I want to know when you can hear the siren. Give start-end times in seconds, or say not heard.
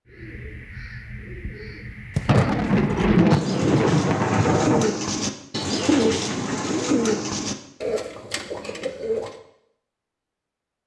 not heard.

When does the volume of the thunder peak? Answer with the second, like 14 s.
3 s.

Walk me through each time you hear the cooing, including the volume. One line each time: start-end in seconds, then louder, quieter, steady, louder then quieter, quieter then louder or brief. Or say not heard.
0.1-9.4 louder then quieter.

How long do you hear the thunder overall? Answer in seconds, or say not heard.
3 s.